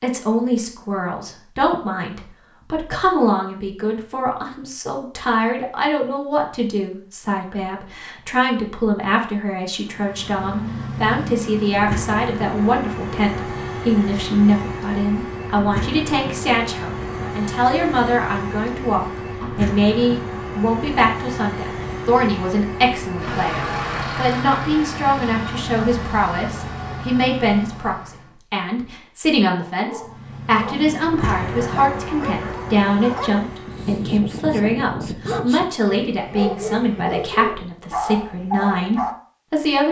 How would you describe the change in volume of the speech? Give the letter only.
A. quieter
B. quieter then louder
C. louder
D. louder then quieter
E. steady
E.